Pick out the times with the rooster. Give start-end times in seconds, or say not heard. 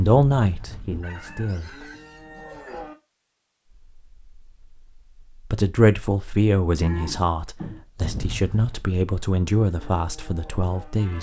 1.0-2.8.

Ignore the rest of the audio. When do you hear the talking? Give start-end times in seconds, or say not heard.
0.0-1.7, 5.5-11.1.